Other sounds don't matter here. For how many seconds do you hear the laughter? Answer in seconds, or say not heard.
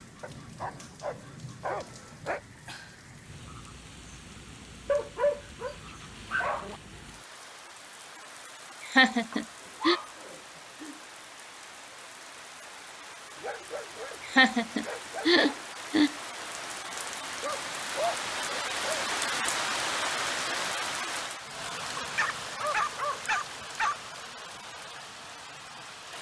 3 s.